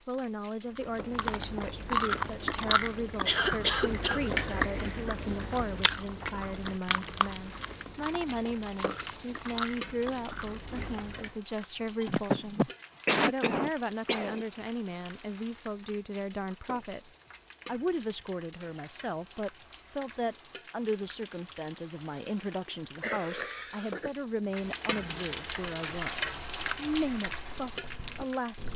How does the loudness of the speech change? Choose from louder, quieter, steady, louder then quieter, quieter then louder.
steady.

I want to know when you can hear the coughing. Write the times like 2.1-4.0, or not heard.
3.2-4.3, 12.0-14.4, 22.6-24.1.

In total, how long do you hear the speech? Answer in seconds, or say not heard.
29 s.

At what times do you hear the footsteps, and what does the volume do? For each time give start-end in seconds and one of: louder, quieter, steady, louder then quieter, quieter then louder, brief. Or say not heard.
not heard.